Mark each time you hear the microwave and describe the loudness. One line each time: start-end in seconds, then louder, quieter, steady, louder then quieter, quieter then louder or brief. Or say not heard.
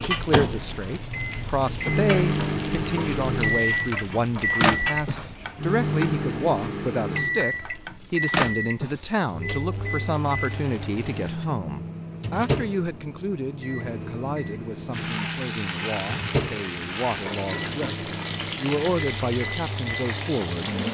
0.0-20.8 quieter.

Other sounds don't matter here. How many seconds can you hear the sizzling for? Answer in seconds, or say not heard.
17 s.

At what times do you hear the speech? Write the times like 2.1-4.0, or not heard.
0.0-20.8.